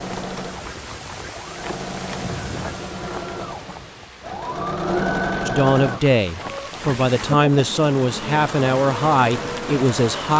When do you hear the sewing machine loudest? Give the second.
5 s.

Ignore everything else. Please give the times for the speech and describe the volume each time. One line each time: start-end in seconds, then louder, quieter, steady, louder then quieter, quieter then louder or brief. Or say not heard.
5.5-10.3 steady.